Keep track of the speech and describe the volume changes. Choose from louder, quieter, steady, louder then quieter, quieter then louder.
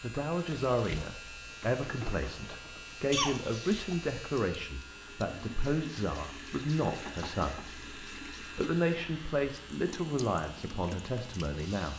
steady.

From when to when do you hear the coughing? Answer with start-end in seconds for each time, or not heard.
3.1-4.1.